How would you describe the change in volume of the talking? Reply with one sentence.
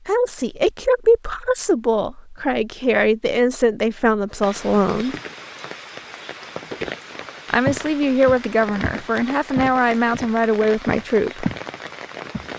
The loudness of the talking stays about the same.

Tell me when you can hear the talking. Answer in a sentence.
The talking can be heard from 0.1 to 5.2 s and from 7.5 to 11.4 s.